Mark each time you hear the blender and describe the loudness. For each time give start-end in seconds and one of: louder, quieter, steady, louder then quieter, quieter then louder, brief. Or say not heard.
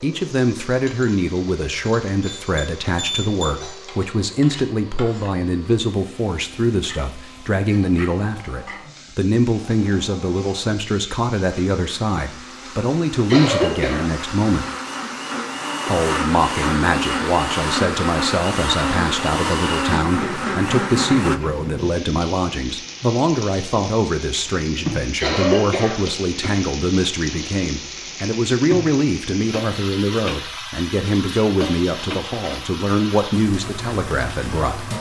0.0-21.4 louder.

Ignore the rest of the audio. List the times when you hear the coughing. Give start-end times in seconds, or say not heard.
13.3-14.1, 25.2-26.6.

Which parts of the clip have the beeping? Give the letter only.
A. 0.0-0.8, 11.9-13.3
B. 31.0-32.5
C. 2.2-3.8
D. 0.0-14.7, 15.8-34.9
C.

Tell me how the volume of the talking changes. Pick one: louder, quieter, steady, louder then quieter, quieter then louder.
steady.